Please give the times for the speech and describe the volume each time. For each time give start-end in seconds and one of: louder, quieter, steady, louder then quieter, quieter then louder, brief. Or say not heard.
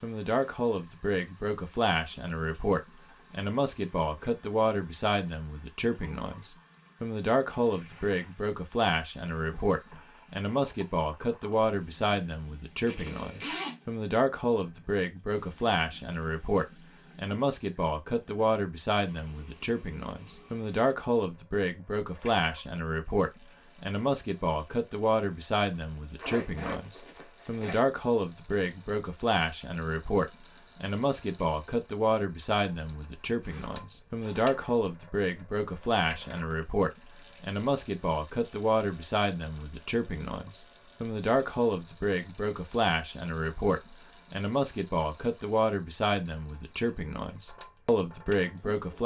0.0-49.0 steady.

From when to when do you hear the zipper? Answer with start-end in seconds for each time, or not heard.
12.8-13.8, 26.1-27.8, 33.4-34.5.